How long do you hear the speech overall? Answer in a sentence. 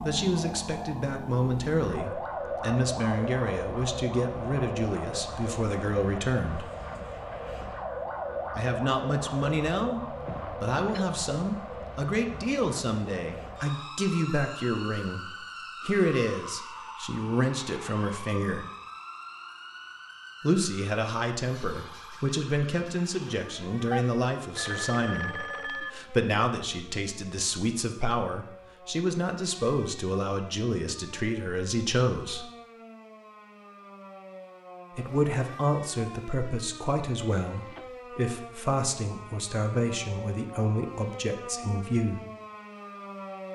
You can hear the speech for 36 seconds altogether.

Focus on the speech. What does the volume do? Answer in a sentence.
The loudness of the speech stays about the same.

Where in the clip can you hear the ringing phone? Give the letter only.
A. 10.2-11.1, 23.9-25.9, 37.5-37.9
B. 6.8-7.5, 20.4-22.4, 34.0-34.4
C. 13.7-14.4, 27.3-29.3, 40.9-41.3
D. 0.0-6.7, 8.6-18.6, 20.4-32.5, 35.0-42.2
A.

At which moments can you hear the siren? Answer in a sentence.
The siren can be heard from 0.0 to 43.5 s.